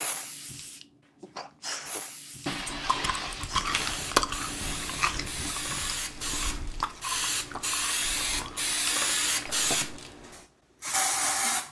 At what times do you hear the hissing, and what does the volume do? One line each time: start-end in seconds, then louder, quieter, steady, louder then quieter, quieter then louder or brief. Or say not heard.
0.0-11.6 louder.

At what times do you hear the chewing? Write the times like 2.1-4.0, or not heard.
2.5-8.9.